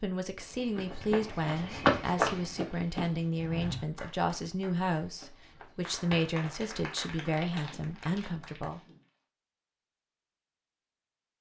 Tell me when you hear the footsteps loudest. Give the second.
2 s.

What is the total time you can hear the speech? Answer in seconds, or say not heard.
9 s.